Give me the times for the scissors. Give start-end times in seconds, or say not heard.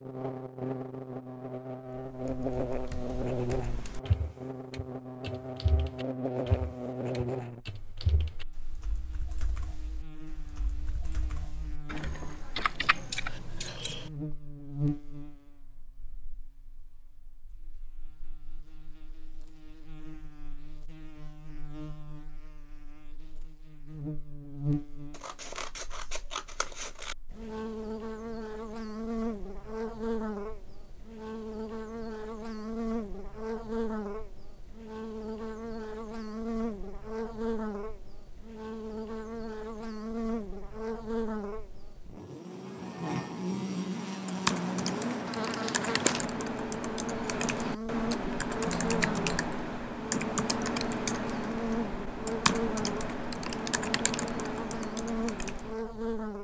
12.8-14.1, 25.1-27.1, 48.6-49.5.